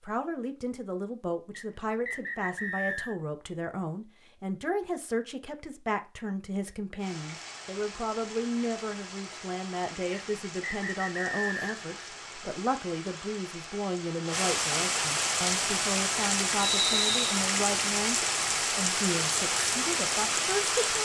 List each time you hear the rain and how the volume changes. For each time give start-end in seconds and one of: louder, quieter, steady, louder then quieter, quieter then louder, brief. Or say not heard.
7.0-21.0 louder.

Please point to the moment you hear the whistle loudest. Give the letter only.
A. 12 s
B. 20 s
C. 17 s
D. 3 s
C.